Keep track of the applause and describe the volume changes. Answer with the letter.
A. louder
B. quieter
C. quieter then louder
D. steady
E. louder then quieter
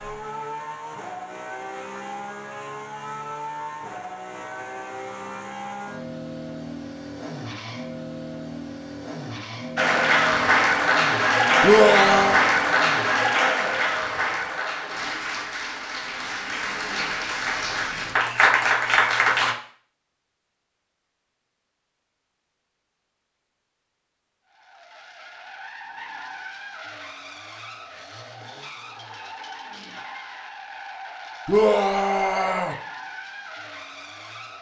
C.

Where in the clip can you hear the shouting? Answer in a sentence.
You can hear the shouting from 11.6 to 12.4 s and from 31.4 to 32.8 s.